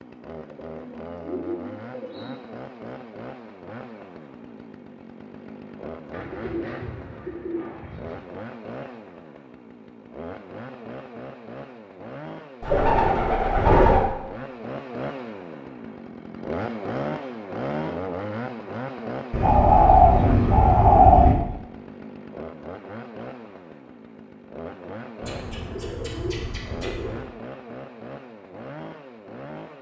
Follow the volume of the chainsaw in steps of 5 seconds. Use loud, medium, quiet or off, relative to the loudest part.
medium, medium, medium, loud, medium, medium.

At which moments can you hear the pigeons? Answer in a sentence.
The pigeons can be heard from 0.7 to 2.3 s, from 6.1 to 8.2 s, from 12.6 to 14.1 s, from 19.3 to 21.4 s and from 25.2 to 27.2 s.